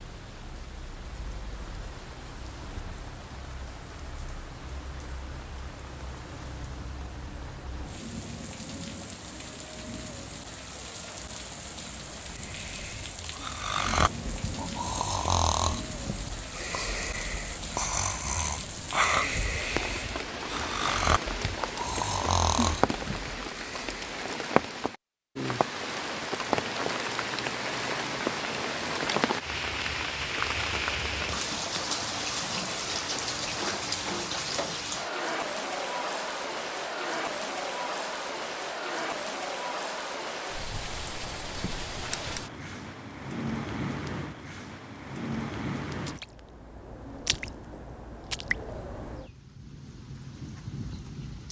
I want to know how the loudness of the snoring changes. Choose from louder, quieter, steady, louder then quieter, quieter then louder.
steady.